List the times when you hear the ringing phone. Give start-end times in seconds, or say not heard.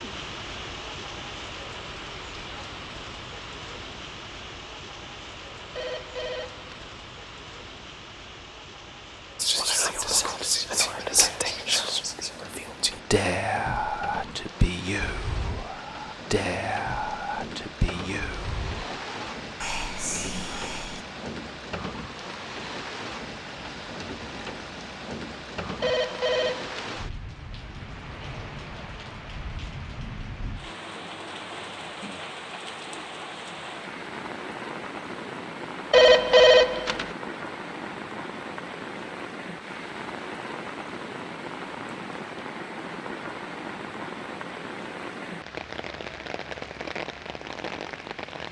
5.8-6.9, 25.8-27.0, 35.9-37.1.